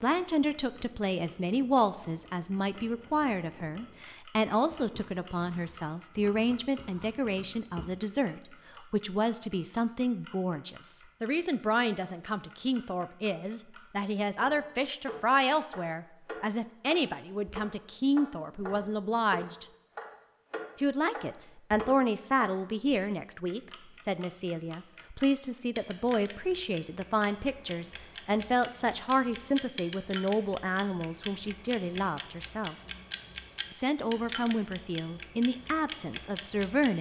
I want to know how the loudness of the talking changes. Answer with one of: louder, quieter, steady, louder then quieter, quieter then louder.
steady.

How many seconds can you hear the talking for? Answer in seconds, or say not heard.
35 s.